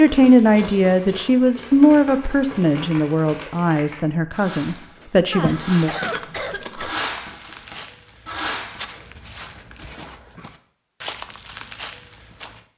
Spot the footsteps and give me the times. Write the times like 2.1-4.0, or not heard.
4.6-12.6.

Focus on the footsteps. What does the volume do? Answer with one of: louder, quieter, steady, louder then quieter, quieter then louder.
quieter then louder.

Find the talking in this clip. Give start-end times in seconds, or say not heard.
0.0-5.9.